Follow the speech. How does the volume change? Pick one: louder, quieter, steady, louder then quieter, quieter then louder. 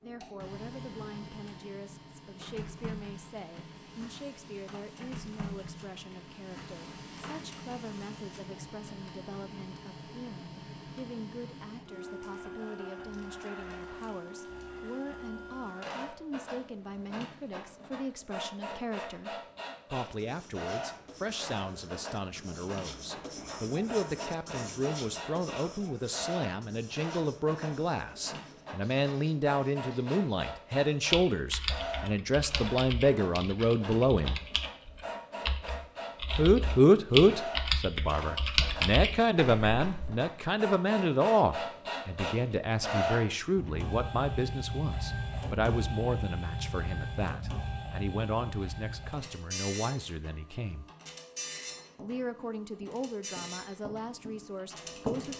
louder then quieter.